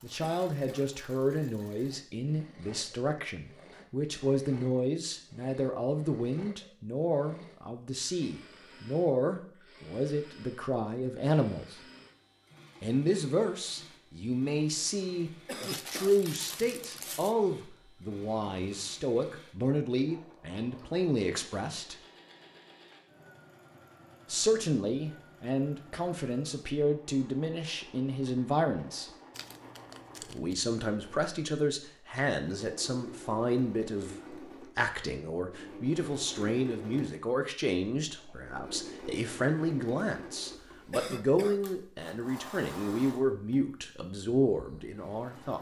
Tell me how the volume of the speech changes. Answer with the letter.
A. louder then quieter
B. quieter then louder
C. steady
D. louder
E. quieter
C.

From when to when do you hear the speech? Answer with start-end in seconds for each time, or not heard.
0.0-11.8, 12.8-21.9, 24.2-29.1, 30.2-45.5.